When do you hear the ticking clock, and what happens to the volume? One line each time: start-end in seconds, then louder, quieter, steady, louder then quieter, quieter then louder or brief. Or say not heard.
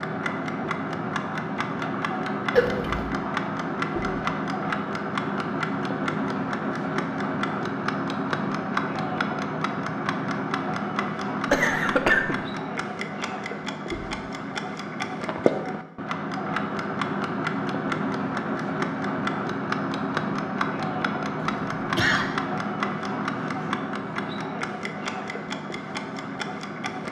0.0-27.0 steady.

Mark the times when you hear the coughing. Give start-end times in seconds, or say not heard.
2.5-3.1, 11.5-12.4, 21.4-22.3.